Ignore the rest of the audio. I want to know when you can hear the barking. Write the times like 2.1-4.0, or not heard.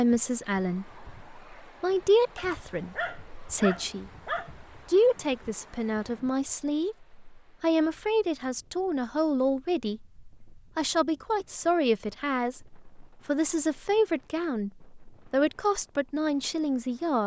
2.4-4.7.